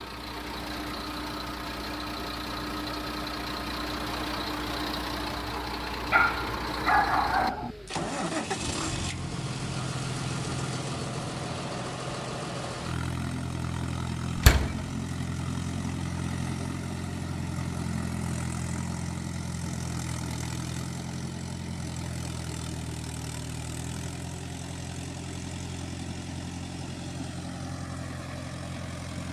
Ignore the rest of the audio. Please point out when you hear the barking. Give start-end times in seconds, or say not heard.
6.1-7.8.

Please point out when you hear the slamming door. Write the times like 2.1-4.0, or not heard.
14.3-14.8.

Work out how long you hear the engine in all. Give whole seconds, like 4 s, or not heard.
29 s.